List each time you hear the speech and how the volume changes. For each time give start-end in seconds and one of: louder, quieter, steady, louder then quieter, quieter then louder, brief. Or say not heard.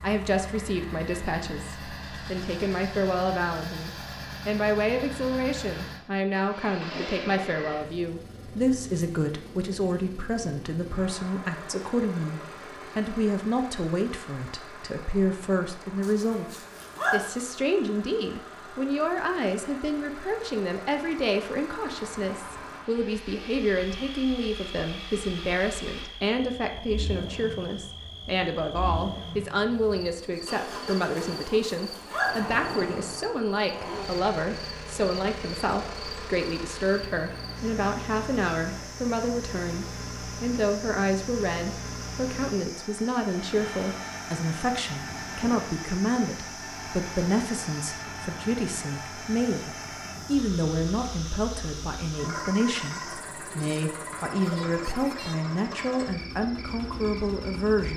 0.0-57.9 steady.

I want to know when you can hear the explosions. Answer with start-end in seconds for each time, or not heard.
not heard.